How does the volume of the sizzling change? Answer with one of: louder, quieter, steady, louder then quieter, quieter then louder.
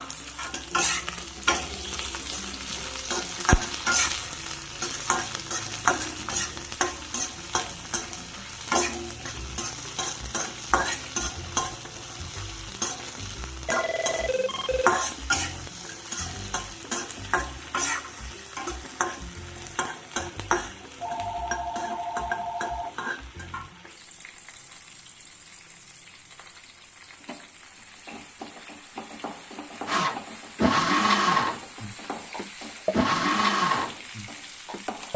quieter.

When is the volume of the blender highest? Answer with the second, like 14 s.
31 s.